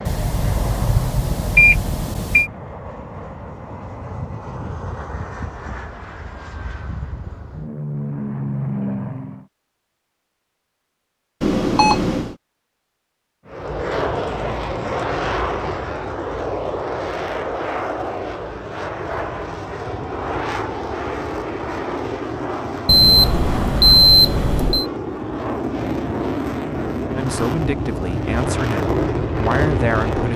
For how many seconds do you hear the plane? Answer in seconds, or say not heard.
26 s.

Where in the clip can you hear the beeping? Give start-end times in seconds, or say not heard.
0.1-2.5, 11.4-12.3, 22.9-24.9.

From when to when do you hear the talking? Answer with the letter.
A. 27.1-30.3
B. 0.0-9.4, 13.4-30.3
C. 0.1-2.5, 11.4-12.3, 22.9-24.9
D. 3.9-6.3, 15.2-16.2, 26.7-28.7
A.